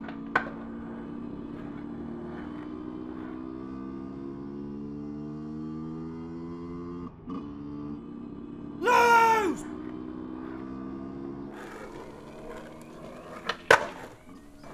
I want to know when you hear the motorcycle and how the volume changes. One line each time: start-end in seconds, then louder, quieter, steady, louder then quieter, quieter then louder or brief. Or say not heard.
0.0-14.6 quieter.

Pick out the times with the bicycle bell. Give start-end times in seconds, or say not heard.
not heard.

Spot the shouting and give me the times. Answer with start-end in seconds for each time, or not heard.
8.8-9.6.